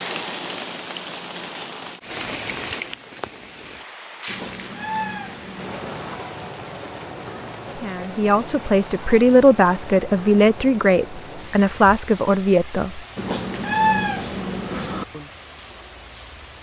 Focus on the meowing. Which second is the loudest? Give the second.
14 s.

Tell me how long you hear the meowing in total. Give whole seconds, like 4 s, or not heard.
4 s.